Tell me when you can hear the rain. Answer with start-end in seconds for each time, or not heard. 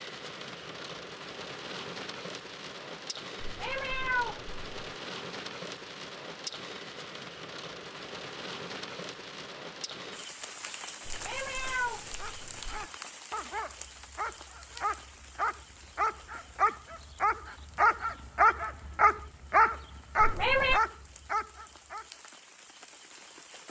0.0-23.6.